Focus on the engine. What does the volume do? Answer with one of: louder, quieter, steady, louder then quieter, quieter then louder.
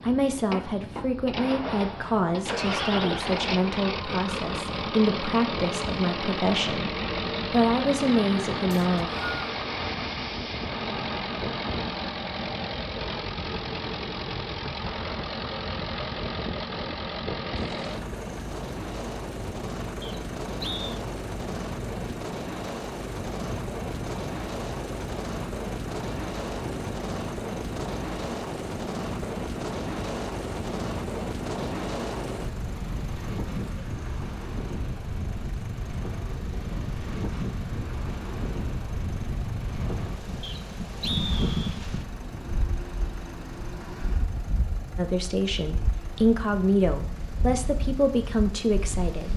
quieter.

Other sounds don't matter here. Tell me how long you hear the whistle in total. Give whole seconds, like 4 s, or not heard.
3 s.